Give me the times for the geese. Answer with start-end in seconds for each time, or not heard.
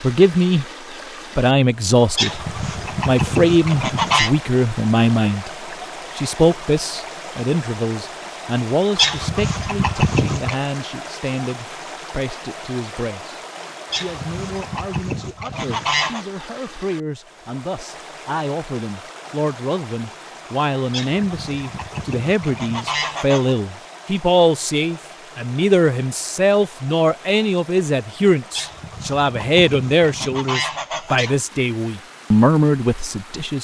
2.1-4.3, 8.9-10.6, 13.9-16.2, 20.9-23.6, 28.5-31.4.